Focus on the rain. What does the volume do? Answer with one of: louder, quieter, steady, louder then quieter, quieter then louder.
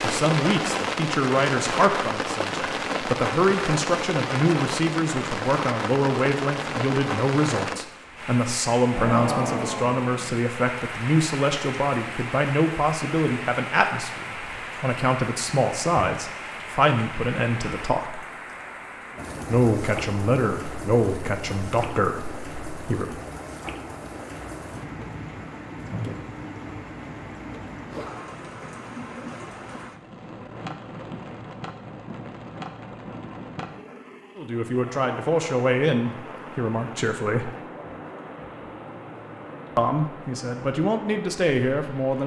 quieter.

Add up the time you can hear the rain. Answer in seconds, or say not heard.
42 s.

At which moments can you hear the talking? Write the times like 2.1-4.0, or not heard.
0.0-18.2, 19.4-23.2, 34.4-37.5, 39.8-42.2.